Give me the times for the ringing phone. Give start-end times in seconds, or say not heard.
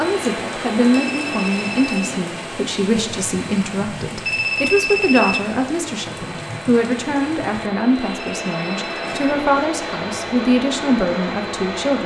0.9-2.1, 4.2-5.4, 8.3-9.3.